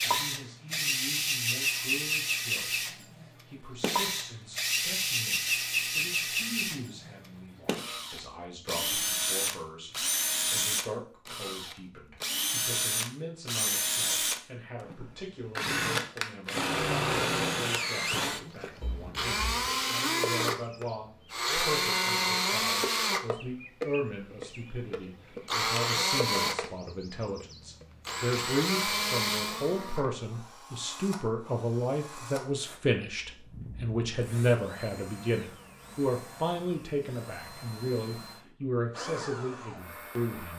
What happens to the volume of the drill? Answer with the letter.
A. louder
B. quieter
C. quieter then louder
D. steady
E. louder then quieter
B.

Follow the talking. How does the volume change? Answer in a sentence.
The volume of the talking goes up.